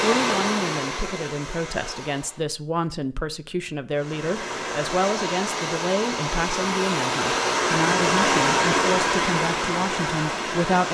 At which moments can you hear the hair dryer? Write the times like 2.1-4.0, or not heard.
0.0-2.5, 4.0-10.8.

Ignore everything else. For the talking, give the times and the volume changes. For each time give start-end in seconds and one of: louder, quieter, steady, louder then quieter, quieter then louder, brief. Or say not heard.
0.0-10.8 steady.